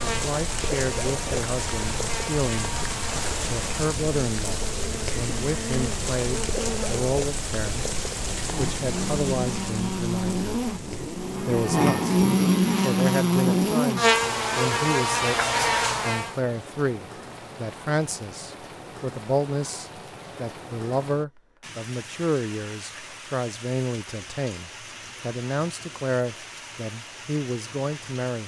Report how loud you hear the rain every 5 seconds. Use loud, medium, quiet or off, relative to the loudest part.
loud, loud, medium, medium, medium, medium.